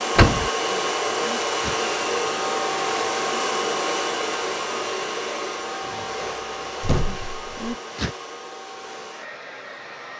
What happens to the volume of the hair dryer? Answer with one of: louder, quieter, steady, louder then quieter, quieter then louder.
quieter.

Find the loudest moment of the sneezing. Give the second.
8 s.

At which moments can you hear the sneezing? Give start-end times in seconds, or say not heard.
0.7-1.8, 7.0-8.2.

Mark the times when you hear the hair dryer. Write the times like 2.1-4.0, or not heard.
0.0-10.1.